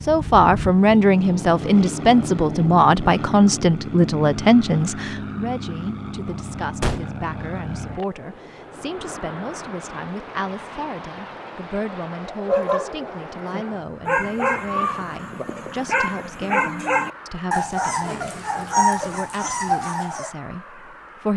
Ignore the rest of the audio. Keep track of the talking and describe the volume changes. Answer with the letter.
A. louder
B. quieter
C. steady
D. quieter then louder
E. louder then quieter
B.